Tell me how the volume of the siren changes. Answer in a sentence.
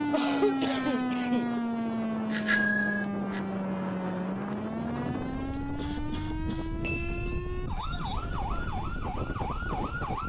The loudness of the siren goes down.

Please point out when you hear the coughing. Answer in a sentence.
The coughing can be heard from 0.1 to 1.6 s and from 5.8 to 7.3 s.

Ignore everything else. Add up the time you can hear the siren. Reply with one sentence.
The siren can be heard for 10 seconds in total.